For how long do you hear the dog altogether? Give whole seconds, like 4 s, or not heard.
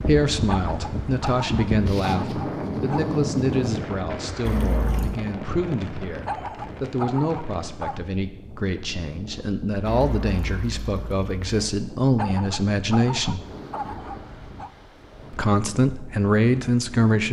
7 s.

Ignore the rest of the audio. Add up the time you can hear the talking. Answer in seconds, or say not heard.
15 s.